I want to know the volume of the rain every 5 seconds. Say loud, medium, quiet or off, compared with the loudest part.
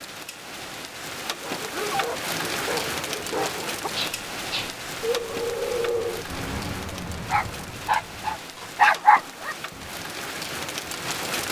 loud, medium, loud.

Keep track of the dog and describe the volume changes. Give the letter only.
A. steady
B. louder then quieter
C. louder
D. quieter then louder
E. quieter
C.